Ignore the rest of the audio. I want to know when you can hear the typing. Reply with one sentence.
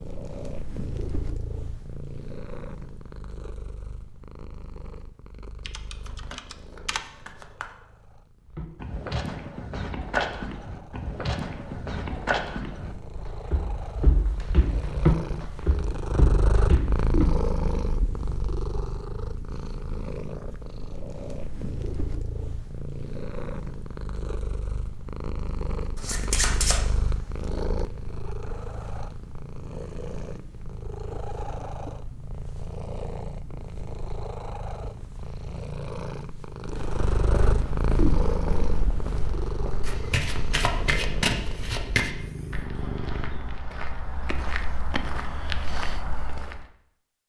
You can hear the typing from 5.7 to 7.0 s.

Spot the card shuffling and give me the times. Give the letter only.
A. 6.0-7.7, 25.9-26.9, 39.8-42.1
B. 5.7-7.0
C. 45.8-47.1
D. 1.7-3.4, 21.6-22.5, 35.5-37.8
A.